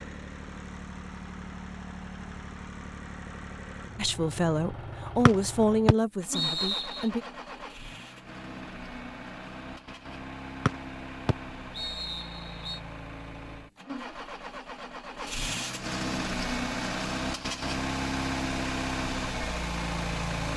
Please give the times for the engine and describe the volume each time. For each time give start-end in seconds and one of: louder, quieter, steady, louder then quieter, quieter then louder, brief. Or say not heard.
0.0-20.5 louder.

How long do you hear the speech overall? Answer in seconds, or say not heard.
3 s.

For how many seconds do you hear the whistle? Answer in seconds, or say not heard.
4 s.